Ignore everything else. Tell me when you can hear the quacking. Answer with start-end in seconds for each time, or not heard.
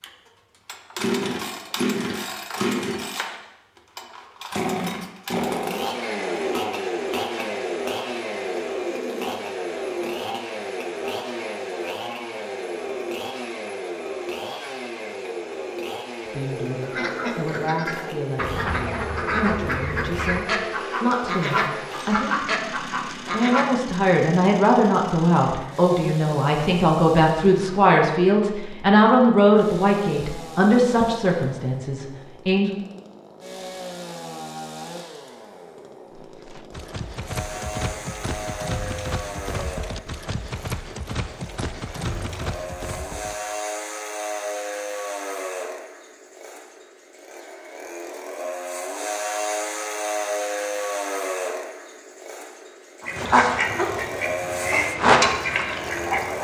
16.9-23.7, 53.0-56.3.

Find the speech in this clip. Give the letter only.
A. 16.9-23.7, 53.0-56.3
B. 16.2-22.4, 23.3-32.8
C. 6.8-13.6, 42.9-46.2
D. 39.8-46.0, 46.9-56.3
B.